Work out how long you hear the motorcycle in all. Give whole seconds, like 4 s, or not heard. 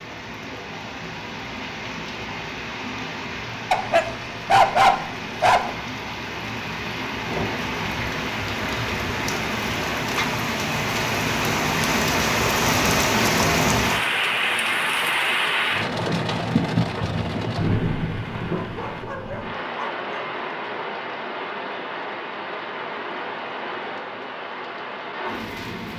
not heard.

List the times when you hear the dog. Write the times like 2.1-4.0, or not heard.
3.7-5.7, 18.4-20.3.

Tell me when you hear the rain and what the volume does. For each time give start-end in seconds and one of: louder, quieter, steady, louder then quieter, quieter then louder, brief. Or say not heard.
0.0-25.9 louder then quieter.